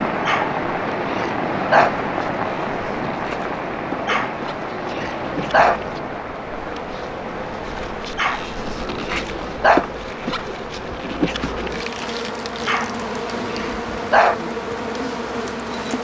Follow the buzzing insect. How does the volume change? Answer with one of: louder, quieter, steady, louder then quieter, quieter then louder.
louder.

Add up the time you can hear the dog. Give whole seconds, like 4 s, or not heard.
7 s.